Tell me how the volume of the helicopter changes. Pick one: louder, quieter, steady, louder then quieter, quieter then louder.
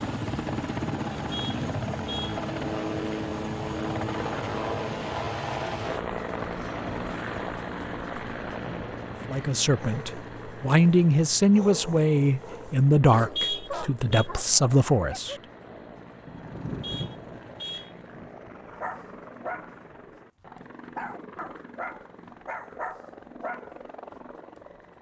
quieter.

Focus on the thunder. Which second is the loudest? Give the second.
17 s.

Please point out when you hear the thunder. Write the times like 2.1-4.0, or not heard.
8.2-9.3, 16.2-19.1.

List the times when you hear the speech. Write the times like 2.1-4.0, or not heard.
9.2-15.3.